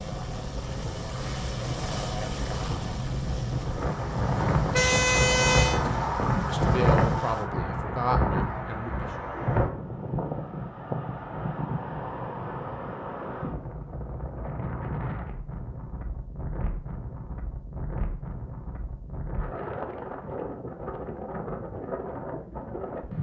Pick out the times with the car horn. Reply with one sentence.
The car horn can be heard from 4.2 to 5.8 s.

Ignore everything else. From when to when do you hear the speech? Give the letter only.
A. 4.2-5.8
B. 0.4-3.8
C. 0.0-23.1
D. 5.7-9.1
D.